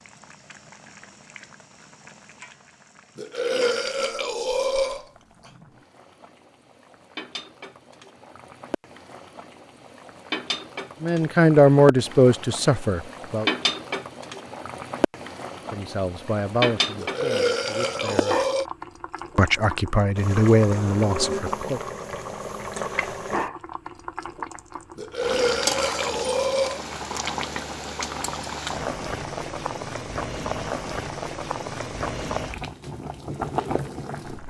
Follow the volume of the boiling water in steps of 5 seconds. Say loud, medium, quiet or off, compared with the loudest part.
quiet, quiet, loud, loud, loud, loud, loud.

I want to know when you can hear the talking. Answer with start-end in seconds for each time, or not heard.
11.0-13.5, 15.7-18.4, 19.4-21.8.